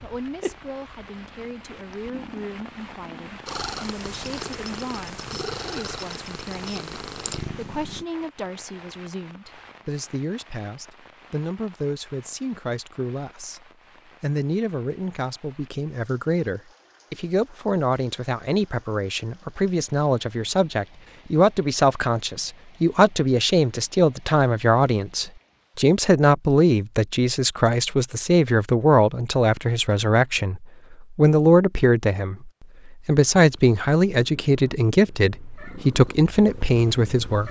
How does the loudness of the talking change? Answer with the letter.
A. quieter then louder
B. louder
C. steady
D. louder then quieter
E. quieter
B.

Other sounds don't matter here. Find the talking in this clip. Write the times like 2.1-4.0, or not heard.
0.0-13.6, 14.2-37.4.